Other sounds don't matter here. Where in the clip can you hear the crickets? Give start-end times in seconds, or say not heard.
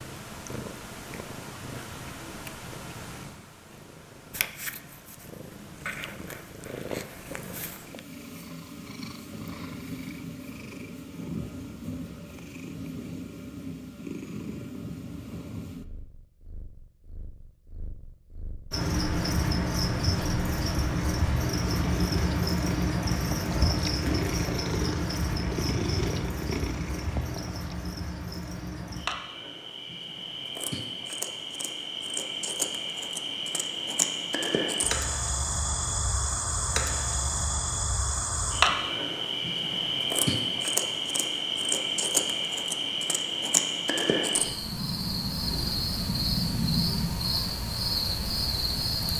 18.7-49.1.